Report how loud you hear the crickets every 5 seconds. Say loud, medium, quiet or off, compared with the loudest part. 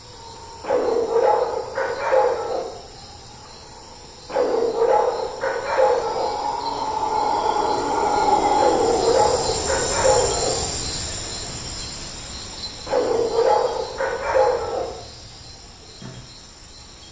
quiet, loud, medium, quiet.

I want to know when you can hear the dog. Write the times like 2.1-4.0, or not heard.
0.6-2.6, 4.2-6.3, 8.6-10.6, 12.8-14.8.